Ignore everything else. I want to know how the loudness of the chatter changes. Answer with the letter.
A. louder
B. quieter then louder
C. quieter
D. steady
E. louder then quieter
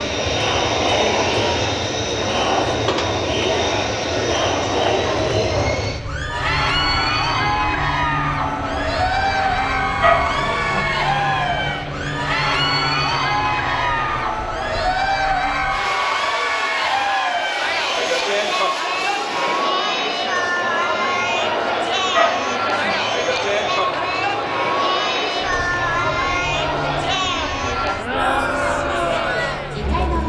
D.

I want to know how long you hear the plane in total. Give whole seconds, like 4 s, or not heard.
30 s.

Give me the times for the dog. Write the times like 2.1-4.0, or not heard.
10.0-10.8, 22.1-22.9.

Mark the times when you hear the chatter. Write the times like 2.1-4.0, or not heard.
0.0-30.2.